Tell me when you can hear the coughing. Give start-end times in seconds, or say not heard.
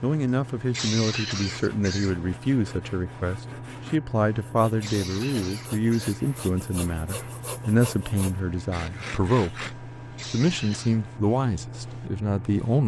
0.7-2.2, 4.3-6.3, 10.1-11.0.